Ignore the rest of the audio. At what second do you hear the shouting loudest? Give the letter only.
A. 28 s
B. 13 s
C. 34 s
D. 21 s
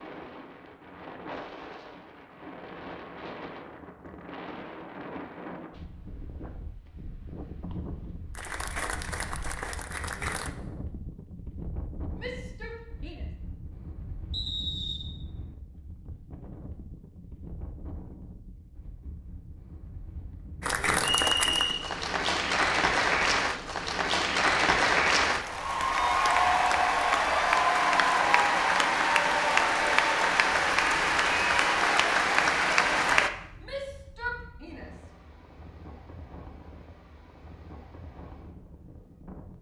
C.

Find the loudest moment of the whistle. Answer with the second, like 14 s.
21 s.